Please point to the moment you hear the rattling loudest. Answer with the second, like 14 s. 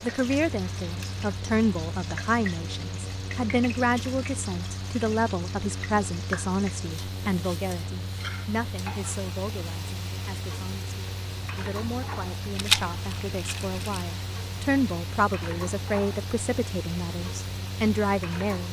13 s.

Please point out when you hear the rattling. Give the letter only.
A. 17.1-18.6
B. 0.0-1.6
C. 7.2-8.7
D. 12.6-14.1
D.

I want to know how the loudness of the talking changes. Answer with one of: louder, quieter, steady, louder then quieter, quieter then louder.
quieter then louder.